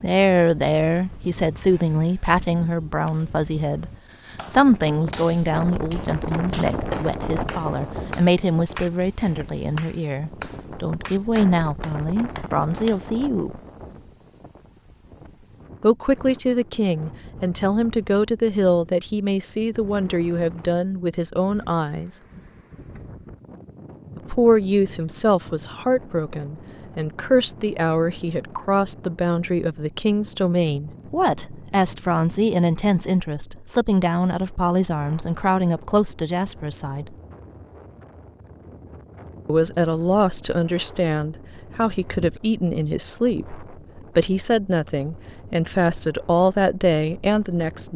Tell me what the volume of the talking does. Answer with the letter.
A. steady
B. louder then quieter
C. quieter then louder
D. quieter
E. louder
A.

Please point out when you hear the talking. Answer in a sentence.
You can hear the talking from 0.0 to 13.6 s, from 15.8 to 22.2 s, from 24.1 to 37.1 s and from 39.5 to 47.9 s.